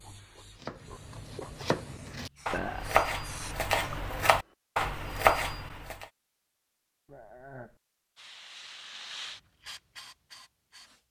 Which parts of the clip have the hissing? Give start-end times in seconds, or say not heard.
0.0-4.2, 8.2-11.0.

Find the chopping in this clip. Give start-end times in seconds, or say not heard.
0.6-6.0.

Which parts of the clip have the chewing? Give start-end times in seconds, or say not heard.
0.0-1.6.